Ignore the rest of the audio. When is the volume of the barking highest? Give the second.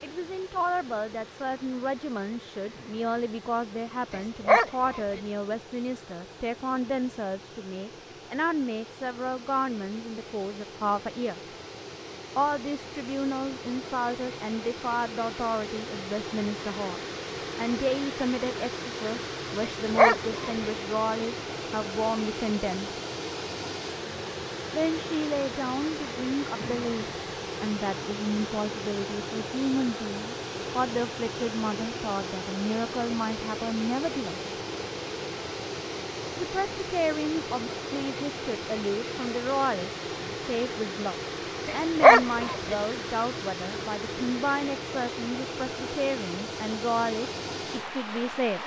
42 s.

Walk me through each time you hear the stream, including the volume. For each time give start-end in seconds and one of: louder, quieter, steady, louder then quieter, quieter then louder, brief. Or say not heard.
0.0-48.6 louder.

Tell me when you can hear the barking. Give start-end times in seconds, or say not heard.
4.1-5.2, 19.6-20.7, 41.6-42.8.